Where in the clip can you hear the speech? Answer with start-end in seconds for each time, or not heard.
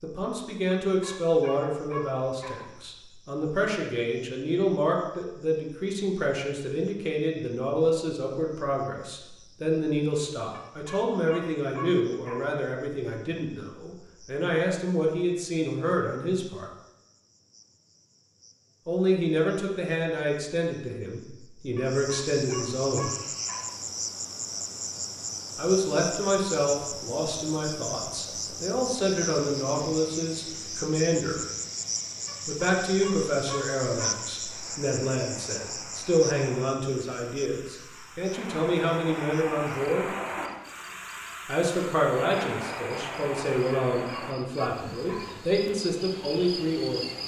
0.0-16.7, 18.9-23.1, 25.6-31.4, 32.5-40.0, 41.5-47.0.